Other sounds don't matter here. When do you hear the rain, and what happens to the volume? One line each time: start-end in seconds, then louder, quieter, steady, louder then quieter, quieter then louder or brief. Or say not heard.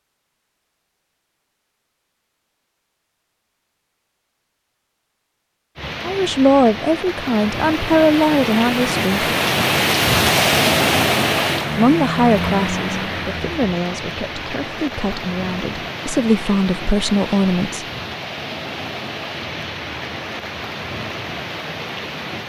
5.8-22.4 louder then quieter.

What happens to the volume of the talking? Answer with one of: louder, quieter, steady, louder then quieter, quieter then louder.
quieter then louder.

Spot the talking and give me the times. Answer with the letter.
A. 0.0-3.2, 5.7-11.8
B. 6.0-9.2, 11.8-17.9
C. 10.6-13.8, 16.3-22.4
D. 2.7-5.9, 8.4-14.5
B.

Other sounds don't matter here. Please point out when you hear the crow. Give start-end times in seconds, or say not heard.
not heard.